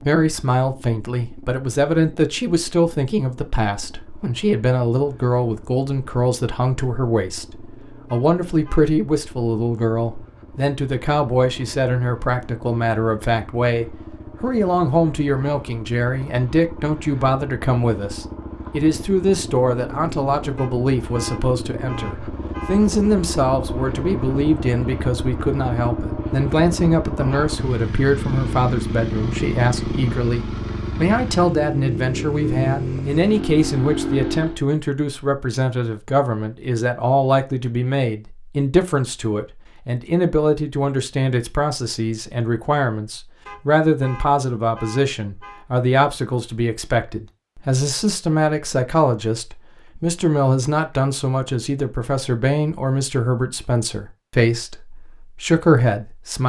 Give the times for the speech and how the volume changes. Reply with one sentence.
The speech can be heard from 0.0 to 56.4 s, at a steady volume.